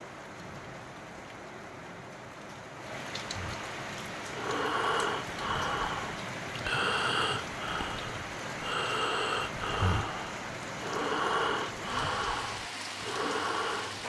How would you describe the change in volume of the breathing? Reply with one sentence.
The loudness of the breathing stays about the same.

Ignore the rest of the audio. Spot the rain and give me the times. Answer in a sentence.
You can hear the rain from 0.0 to 14.0 s.